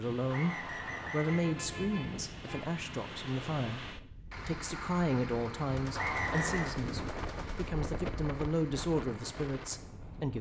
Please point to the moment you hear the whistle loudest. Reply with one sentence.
The volume of the whistle peaks at 6 seconds.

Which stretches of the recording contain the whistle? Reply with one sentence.
The whistle can be heard from 0.2 to 1.5 s and from 6.0 to 6.8 s.